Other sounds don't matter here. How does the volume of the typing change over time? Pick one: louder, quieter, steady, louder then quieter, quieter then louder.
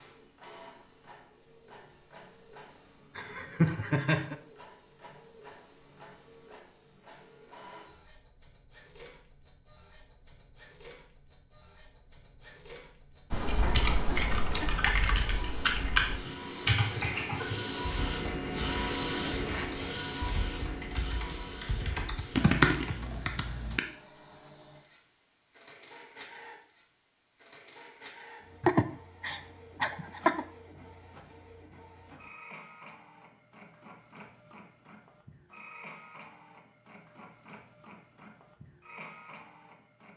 quieter then louder.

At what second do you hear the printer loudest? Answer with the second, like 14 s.
19 s.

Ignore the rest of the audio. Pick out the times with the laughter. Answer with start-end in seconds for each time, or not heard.
3.1-4.3, 14.1-14.9, 28.6-30.4.